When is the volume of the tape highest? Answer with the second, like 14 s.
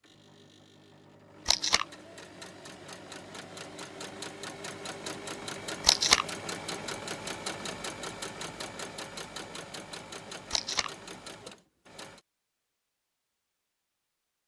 6 s.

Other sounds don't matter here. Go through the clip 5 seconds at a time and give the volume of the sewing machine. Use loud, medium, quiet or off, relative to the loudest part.
medium, loud, medium.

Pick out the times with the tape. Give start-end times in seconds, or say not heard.
1.4-1.9, 5.8-6.2, 10.5-10.9.